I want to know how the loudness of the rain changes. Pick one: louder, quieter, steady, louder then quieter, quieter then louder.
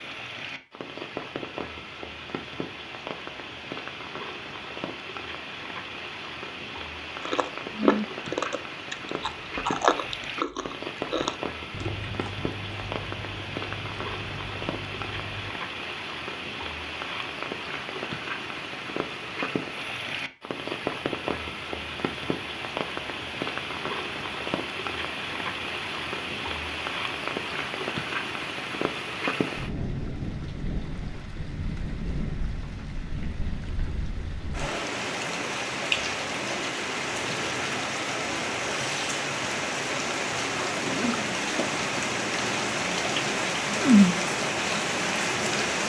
louder.